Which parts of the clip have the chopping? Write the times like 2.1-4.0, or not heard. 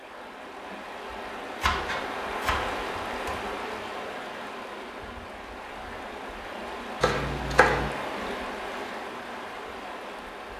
1.6-3.4, 7.0-7.9.